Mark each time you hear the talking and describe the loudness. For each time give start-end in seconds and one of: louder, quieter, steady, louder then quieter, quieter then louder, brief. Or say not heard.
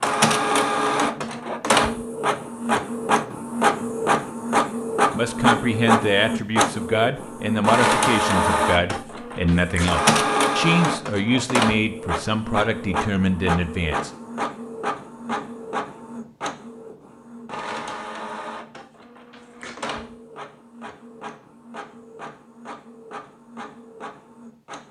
5.1-14.1 steady.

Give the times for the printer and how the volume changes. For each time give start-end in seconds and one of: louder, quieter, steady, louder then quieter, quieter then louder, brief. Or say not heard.
0.0-24.8 quieter.